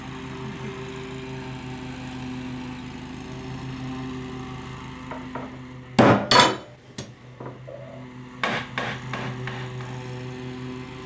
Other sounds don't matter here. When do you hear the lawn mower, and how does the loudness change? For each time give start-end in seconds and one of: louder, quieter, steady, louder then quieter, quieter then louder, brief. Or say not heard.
0.0-11.0 quieter then louder.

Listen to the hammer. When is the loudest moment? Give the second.
6 s.